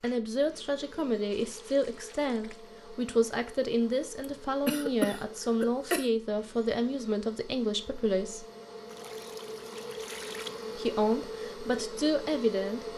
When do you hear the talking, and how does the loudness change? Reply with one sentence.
You can hear the talking from 0.0 to 8.4 s, at a steady volume; and briefly from 10.8 to 12.8 s.